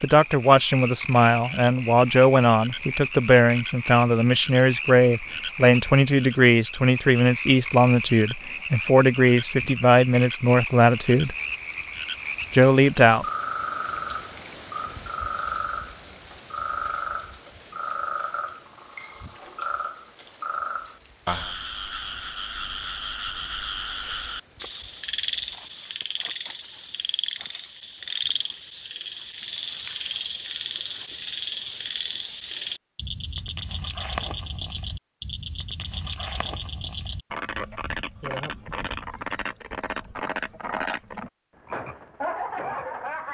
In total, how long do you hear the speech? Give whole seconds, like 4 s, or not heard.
12 s.